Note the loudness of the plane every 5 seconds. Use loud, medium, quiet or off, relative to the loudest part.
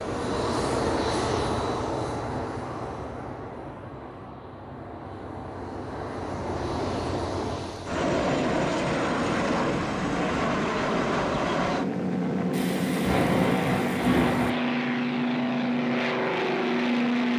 medium, loud, loud, loud.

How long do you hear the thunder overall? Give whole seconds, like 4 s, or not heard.
2 s.